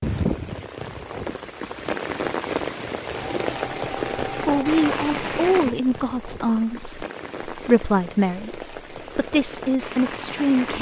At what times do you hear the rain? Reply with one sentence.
You can hear the rain from 0.0 to 10.7 s.